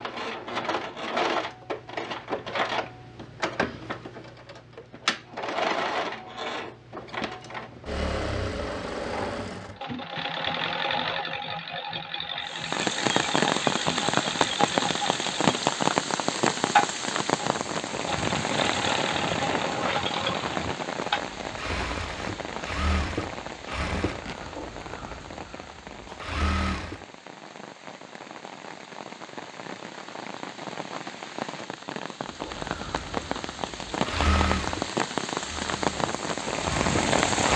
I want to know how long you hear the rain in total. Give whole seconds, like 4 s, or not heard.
25 s.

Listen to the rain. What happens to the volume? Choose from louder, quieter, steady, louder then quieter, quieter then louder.
quieter then louder.